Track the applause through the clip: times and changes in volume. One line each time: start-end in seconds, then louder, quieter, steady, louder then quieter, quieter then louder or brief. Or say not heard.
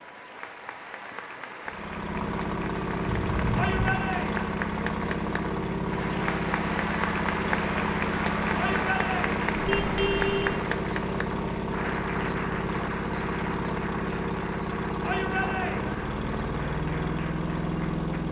0.0-18.2 louder then quieter.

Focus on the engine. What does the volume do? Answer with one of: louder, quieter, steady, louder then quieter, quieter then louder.
steady.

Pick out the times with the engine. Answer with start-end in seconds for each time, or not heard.
1.6-18.2.